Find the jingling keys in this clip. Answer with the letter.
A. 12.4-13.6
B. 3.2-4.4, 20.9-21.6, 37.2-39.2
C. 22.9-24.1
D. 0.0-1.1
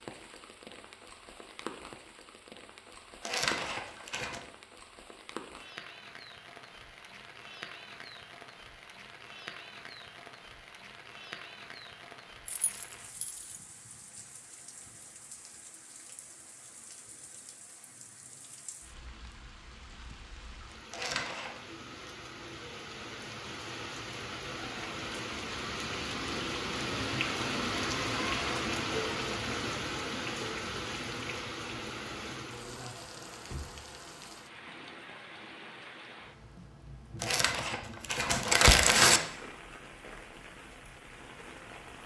A.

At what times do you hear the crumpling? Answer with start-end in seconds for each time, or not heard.
3.2-4.4, 20.9-21.6, 37.2-39.2.